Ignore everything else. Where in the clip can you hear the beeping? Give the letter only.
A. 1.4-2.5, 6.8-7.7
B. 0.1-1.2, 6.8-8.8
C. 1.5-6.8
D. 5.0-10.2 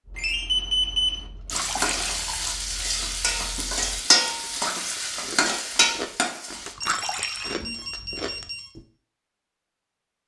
B.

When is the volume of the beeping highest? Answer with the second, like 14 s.
1 s.